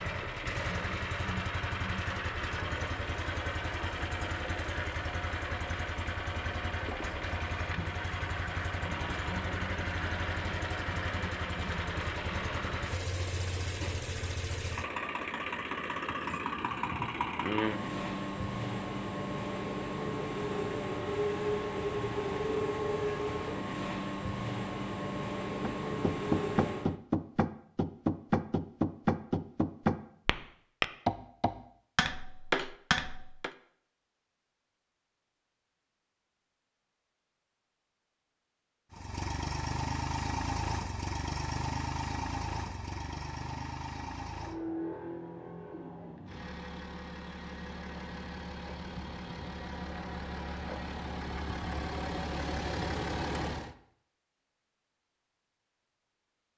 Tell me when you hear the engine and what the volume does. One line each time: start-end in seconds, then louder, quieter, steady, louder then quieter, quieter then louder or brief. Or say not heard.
0.0-26.9 steady
38.9-53.8 quieter then louder.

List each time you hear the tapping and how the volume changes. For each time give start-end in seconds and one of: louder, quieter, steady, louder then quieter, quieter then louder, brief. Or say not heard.
25.6-33.5 steady.